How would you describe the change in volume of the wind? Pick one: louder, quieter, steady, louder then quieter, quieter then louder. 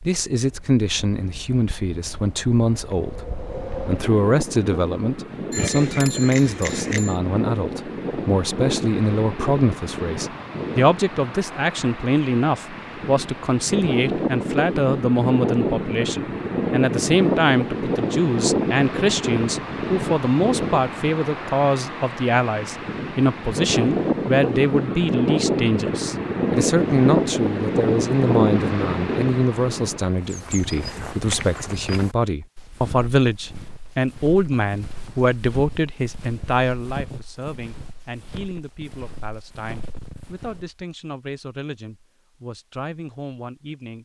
louder.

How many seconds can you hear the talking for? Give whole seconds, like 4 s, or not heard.
44 s.